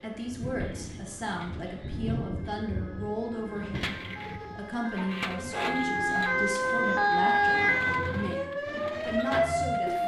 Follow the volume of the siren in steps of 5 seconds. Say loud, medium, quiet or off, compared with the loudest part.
quiet, loud.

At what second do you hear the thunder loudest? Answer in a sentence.
The loudest moment of the thunder is at 2 seconds.